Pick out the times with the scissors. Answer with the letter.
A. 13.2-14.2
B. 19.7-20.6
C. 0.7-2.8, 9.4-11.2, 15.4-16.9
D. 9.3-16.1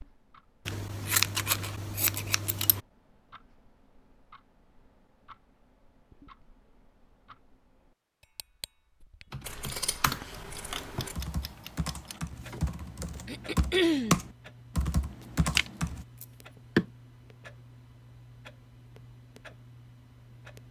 C.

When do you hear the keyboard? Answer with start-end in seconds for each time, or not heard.
9.3-16.1.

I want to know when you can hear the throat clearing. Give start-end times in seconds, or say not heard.
13.2-14.2.